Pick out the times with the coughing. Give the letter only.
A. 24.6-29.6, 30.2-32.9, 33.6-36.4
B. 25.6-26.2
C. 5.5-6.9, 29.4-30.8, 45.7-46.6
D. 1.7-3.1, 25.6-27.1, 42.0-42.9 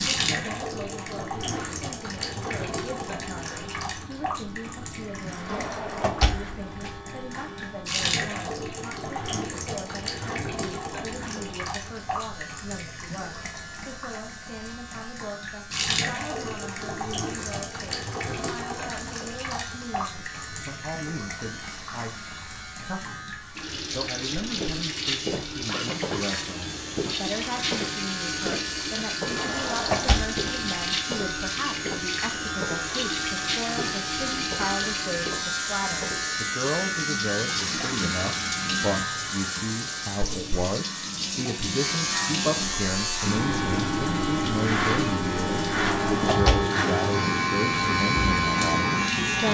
B.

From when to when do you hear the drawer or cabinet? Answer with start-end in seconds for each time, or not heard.
5.5-6.9, 29.4-30.8, 45.7-46.6.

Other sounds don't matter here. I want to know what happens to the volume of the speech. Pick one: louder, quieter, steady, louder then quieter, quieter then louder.
louder.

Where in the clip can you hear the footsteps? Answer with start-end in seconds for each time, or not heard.
24.6-29.6, 30.2-32.9, 33.6-36.4.